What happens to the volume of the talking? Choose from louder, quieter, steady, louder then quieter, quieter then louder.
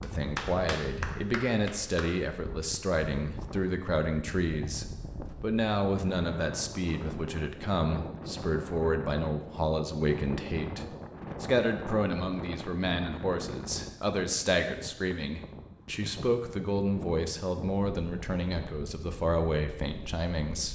steady.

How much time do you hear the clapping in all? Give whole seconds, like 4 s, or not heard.
2 s.